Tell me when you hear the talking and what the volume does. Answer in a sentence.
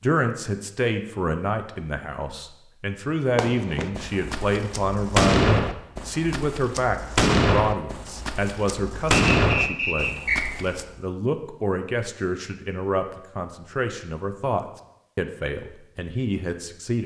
You can hear the talking from 0.0 to 17.0 s, at a steady volume.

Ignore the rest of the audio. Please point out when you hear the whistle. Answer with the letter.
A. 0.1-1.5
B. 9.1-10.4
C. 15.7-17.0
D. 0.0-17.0
B.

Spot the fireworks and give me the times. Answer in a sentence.
You can hear the fireworks from 3.4 to 10.9 s.